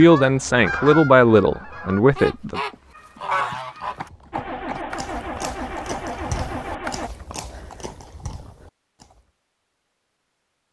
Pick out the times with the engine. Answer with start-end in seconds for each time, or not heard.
4.3-7.1.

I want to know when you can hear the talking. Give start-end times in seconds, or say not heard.
0.0-2.6.